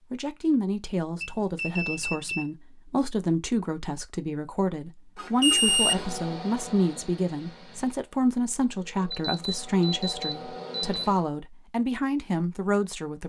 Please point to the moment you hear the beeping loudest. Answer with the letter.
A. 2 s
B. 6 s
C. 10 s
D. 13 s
B.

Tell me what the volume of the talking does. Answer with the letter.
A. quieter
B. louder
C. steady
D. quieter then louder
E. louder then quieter
C.